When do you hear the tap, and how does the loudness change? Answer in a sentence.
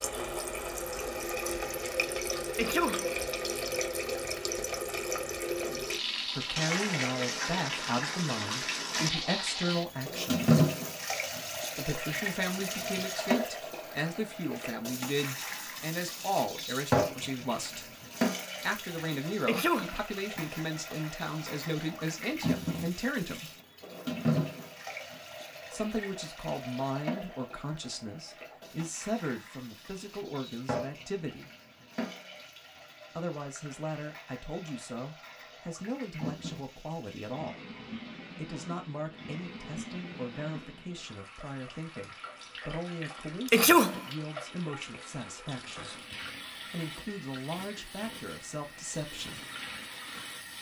The tap can be heard from 0.0 to 50.5 s, getting quieter.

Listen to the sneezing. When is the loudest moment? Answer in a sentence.
The loudest moment of the sneezing is at 44 seconds.